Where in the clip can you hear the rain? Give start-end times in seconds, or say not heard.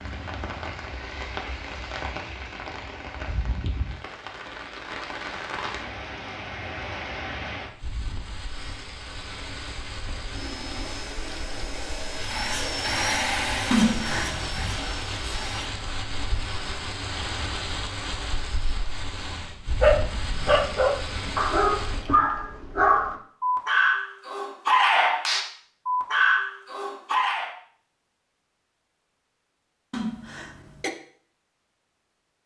0.0-22.1.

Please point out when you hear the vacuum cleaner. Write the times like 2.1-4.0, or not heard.
10.3-15.7.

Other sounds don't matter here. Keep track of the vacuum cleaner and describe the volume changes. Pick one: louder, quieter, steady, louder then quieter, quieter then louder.
louder then quieter.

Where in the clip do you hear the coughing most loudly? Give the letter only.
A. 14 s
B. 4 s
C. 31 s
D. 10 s
A.